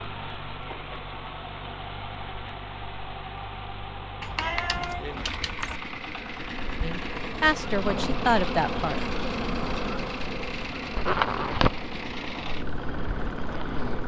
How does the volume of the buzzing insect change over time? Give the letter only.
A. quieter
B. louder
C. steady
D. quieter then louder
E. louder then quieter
B.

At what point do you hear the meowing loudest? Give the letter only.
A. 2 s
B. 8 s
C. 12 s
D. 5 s
D.